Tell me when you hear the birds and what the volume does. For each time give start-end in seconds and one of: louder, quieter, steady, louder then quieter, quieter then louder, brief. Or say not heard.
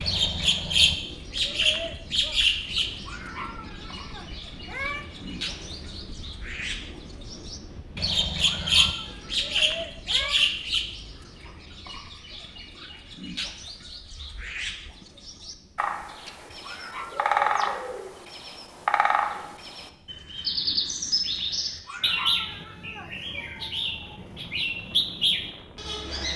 0.0-26.3 quieter then louder.